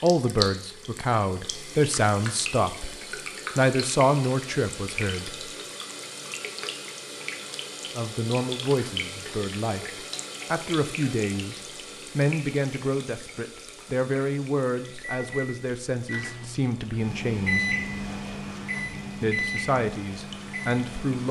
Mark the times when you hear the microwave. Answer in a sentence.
The microwave can be heard from 15.1 to 21.2 s.